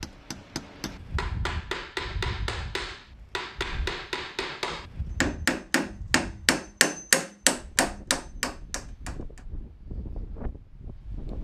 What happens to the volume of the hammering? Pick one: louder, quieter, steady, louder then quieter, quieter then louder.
louder.